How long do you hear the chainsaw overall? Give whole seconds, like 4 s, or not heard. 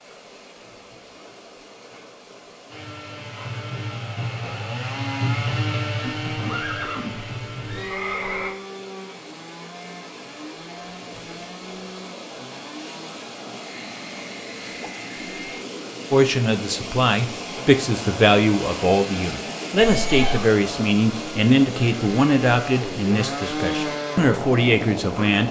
21 s.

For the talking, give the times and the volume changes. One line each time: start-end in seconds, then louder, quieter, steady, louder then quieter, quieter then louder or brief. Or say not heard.
16.1-25.4 steady.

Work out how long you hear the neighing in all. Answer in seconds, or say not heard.
3 s.